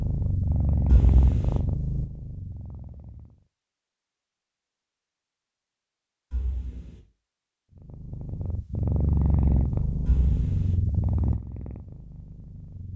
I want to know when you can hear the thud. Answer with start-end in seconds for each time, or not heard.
0.9-1.6, 6.3-7.0, 10.1-10.8.